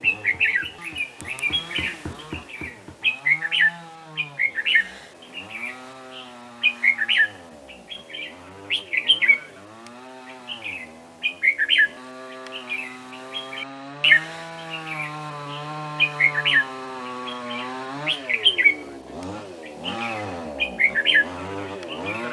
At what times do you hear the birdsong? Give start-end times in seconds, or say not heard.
0.0-9.4, 10.4-18.8, 19.6-22.2.